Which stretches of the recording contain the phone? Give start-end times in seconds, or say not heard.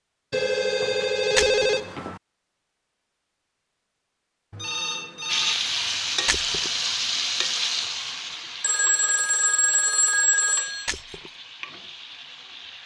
0.3-2.2, 4.5-5.5, 8.6-10.9.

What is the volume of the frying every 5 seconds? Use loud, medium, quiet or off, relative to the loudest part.
off, loud, quiet.